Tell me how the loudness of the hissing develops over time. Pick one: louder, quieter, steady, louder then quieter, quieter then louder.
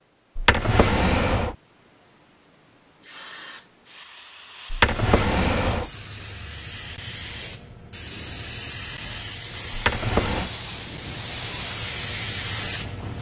louder.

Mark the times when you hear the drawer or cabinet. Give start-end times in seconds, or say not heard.
0.3-1.6, 4.7-5.9, 9.7-10.5.